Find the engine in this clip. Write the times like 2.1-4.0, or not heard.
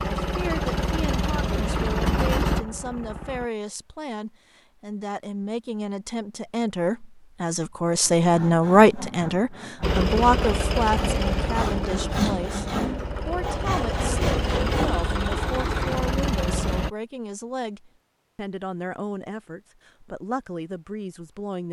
0.0-3.5, 9.8-16.9.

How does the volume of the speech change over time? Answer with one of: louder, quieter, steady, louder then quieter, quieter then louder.
louder then quieter.